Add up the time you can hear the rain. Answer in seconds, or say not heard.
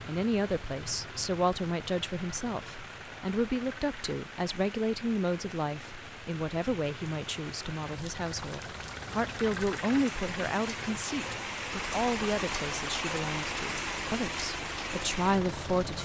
16 s.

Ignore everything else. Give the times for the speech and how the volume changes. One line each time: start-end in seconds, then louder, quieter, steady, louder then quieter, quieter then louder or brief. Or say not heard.
0.1-16.0 steady.